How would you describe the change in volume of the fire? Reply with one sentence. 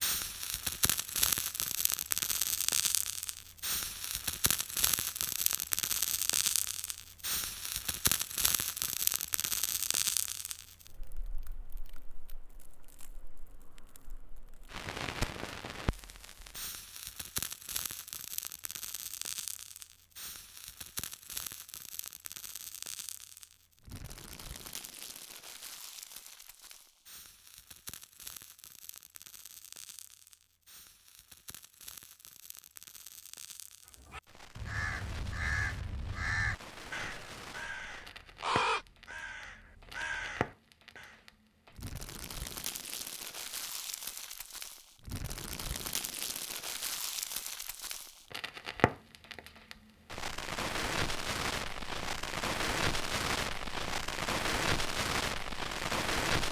The volume of the fire goes down, then up.